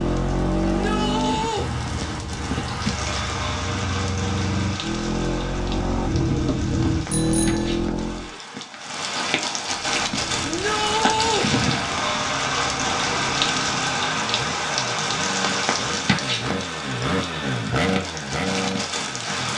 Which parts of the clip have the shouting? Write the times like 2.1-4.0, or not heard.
0.7-1.7, 10.4-11.5.